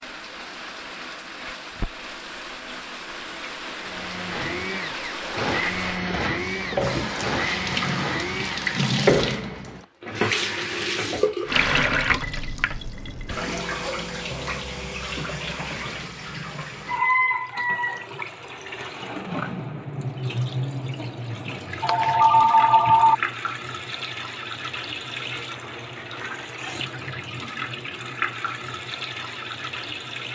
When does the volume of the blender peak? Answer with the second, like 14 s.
6 s.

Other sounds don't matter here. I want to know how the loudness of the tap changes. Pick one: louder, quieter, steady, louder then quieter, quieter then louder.
louder then quieter.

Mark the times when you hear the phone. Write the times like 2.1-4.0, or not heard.
21.8-23.1.